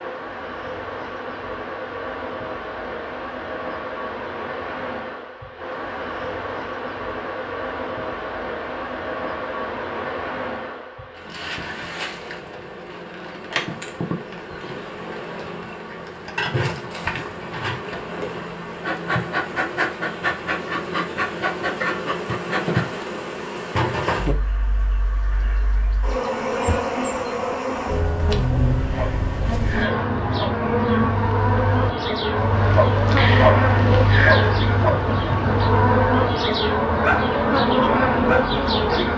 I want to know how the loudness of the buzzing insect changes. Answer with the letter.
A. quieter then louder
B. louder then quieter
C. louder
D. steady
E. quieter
C.